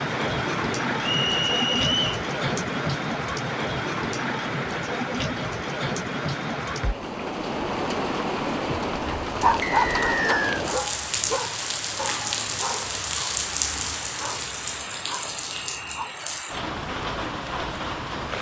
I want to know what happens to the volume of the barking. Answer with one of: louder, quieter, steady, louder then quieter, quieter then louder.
quieter.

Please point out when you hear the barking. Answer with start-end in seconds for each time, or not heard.
9.0-16.4.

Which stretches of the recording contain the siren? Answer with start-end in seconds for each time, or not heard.
not heard.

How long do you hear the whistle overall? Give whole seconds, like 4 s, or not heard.
3 s.